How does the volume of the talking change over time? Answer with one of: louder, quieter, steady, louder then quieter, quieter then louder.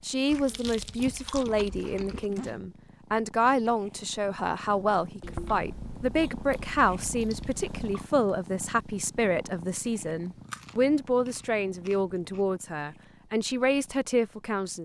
steady.